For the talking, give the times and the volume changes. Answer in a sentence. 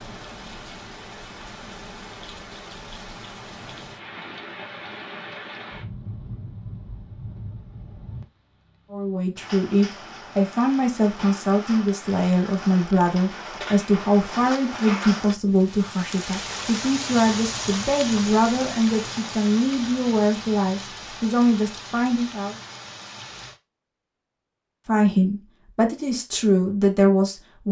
You can hear the talking from 8.9 to 22.6 s, at a steady volume; and briefly from 24.9 to 27.6 s.